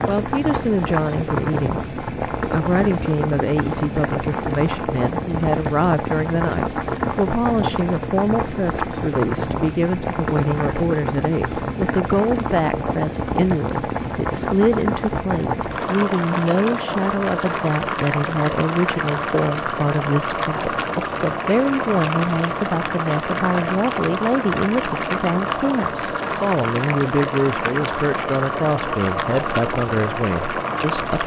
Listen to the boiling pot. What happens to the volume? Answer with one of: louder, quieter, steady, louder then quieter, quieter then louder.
steady.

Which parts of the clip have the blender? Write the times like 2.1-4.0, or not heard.
not heard.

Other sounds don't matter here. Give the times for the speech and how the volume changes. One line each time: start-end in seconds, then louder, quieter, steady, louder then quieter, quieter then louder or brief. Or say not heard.
0.1-31.2 steady.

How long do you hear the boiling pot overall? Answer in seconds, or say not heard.
31 s.